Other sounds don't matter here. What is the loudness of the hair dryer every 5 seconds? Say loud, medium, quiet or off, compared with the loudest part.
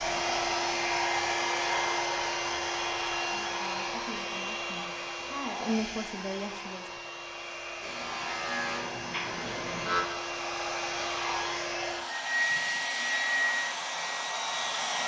loud, medium, loud.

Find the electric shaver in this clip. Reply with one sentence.
The electric shaver can be heard from 7.8 to 10.1 s.